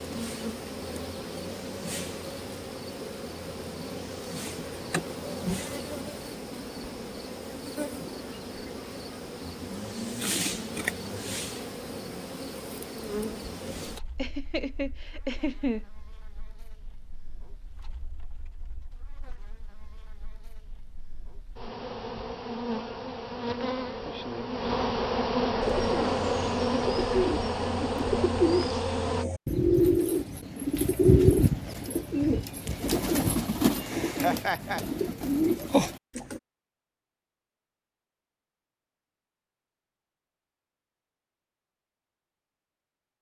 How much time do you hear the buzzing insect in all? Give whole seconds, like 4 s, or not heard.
29 s.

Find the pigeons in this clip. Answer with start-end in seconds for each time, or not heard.
25.6-36.4.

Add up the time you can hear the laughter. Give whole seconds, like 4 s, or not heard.
2 s.